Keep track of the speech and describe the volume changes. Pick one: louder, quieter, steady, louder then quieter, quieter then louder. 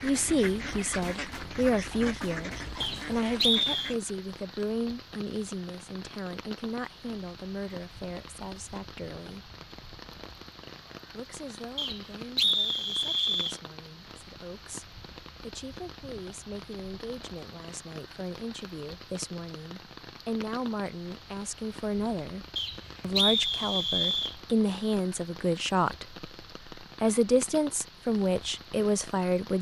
quieter then louder.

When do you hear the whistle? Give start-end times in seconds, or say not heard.
2.8-4.0, 11.8-13.6, 22.6-24.4.